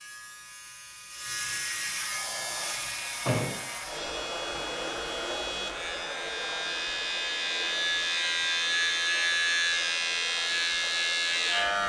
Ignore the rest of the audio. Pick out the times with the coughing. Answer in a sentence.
You can't hear the coughing here.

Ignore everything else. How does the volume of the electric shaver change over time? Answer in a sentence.
The loudness of the electric shaver goes up.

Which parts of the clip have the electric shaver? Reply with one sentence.
The electric shaver can be heard from 0.0 to 11.8 s.